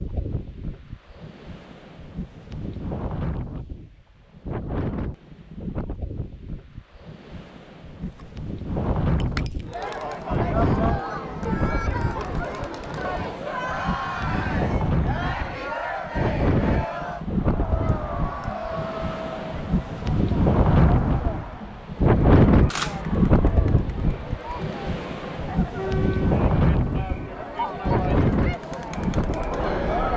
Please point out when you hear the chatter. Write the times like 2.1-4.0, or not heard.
9.7-30.1.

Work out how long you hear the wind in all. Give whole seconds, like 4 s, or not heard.
30 s.